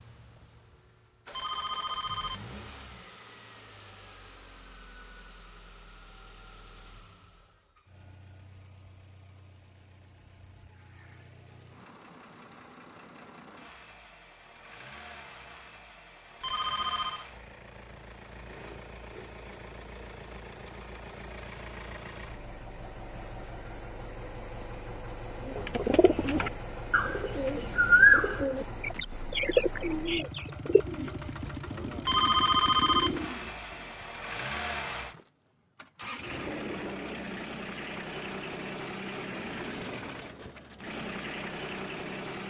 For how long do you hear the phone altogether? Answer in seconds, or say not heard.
3 s.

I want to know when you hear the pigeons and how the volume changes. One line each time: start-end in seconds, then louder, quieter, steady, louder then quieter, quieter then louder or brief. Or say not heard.
25.4-34.0 louder then quieter.